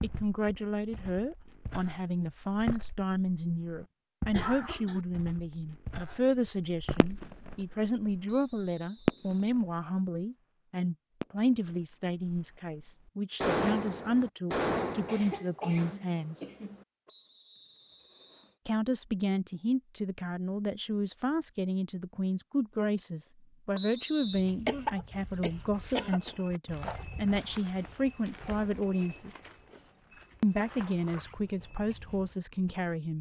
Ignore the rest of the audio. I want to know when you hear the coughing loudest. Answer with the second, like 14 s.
25 s.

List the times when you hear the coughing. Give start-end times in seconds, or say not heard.
4.3-5.0, 15.1-16.9, 24.6-26.3.